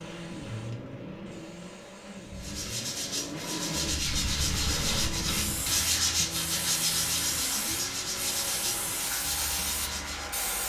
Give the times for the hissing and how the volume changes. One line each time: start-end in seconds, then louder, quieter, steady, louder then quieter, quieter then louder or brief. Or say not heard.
0.0-10.6 louder.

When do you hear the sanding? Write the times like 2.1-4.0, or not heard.
2.4-10.4.